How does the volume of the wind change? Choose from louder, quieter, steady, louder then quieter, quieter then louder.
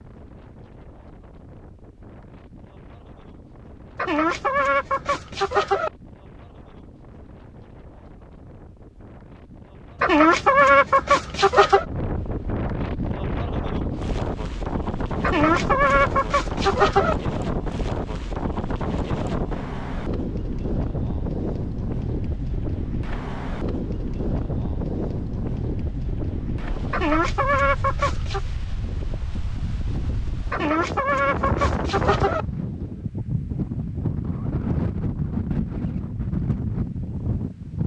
louder.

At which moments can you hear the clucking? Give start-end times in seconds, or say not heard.
4.0-5.9, 10.0-11.8, 15.2-17.1, 26.9-28.4, 30.5-32.5.